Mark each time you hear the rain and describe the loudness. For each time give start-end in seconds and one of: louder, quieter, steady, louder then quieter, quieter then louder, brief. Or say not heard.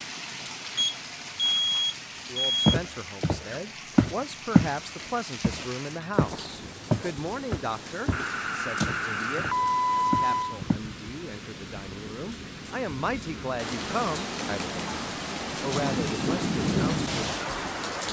0.0-18.0 louder.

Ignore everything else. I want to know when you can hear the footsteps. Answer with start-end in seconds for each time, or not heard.
2.6-4.8, 5.4-10.8.